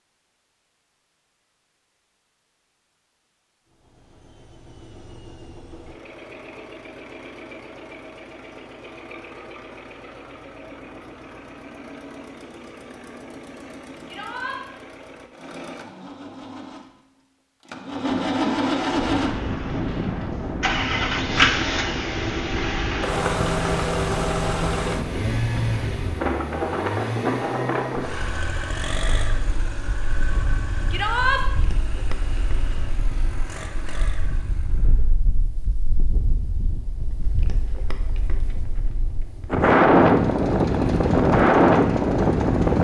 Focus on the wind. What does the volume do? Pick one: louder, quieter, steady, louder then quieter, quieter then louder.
quieter then louder.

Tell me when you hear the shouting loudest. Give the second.
31 s.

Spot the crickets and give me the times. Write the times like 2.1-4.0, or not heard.
not heard.